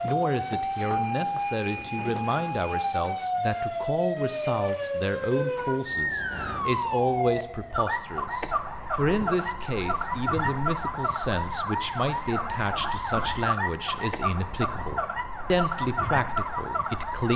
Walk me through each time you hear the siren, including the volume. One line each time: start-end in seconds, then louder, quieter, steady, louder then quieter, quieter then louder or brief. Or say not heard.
0.0-17.3 steady.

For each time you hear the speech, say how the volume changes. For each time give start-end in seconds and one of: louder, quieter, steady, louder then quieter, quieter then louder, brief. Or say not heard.
0.0-17.3 steady.